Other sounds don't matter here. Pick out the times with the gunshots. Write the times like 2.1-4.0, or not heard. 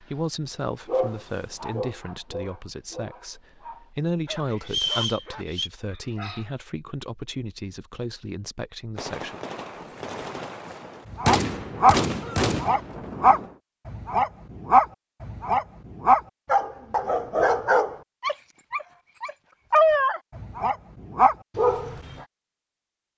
8.9-13.6.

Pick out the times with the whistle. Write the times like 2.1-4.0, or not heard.
4.7-5.7.